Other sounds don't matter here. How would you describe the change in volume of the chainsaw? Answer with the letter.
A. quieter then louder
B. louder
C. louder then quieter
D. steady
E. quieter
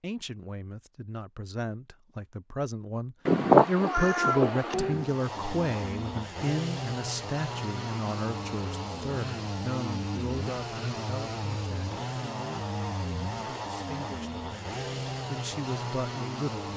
D.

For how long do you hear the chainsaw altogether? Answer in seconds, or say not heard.
12 s.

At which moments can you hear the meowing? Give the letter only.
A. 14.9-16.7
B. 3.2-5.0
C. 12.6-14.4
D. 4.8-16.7
B.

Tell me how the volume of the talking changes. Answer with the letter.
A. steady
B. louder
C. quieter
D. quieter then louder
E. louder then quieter
E.